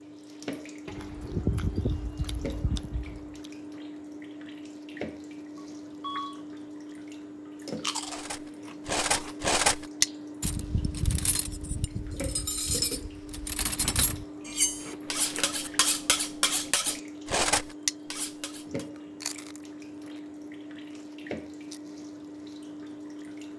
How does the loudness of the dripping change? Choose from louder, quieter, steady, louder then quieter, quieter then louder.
steady.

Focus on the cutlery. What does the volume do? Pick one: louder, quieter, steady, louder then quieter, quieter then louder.
quieter then louder.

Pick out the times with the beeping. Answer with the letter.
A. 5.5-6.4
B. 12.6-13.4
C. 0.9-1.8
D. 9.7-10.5
A.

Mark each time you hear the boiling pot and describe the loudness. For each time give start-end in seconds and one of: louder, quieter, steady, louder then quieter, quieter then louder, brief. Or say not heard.
not heard.